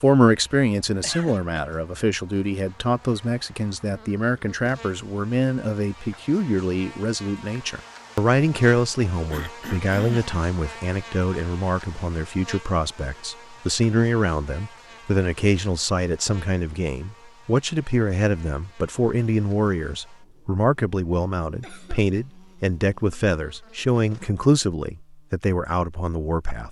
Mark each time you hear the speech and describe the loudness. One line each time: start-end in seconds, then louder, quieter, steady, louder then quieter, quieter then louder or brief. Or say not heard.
0.0-26.6 steady.